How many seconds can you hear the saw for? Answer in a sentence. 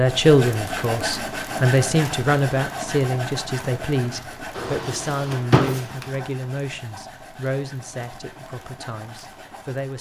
You can hear the saw for 10 seconds altogether.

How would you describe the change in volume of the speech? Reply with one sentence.
The loudness of the speech goes down.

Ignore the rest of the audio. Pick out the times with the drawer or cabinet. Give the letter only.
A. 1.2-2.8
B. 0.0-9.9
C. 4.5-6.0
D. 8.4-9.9
C.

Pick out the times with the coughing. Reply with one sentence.
The coughing can't be heard in this clip.